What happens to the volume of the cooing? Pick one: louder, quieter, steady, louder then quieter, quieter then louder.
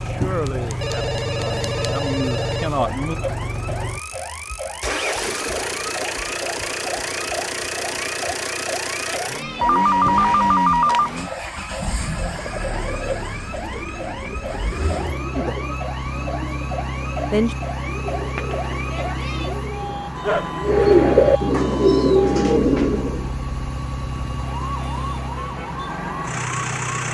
louder.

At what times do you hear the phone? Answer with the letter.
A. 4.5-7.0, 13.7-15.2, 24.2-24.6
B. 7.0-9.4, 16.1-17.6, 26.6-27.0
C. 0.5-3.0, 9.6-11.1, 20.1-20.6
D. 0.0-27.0
C.